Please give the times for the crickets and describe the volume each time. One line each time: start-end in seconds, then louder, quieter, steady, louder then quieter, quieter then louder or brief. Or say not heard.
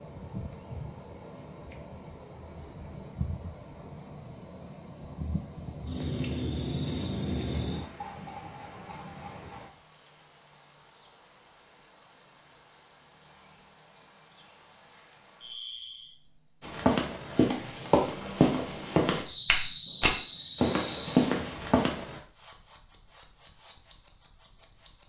0.0-25.0 steady.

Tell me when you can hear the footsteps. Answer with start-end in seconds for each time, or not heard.
16.6-22.2.